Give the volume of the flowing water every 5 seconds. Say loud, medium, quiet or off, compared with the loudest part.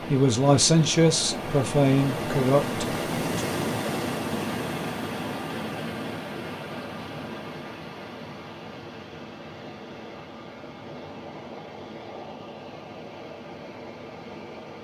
loud, medium, medium.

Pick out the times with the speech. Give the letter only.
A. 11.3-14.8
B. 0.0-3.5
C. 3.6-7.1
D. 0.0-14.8
B.